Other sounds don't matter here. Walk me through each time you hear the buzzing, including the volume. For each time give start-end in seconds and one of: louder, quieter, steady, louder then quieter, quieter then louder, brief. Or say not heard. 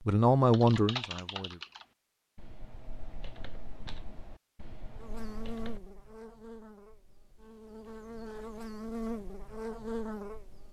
5.0-10.6 quieter then louder.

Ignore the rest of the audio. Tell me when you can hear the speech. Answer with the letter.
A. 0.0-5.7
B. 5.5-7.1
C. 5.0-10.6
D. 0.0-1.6
D.